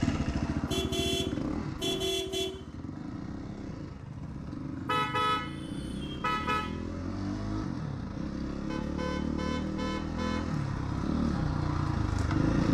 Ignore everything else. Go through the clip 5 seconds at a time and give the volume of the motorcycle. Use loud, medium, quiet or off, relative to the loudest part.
medium, medium, loud.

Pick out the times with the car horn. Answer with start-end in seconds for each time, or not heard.
0.7-2.6, 4.8-6.8, 8.7-10.4.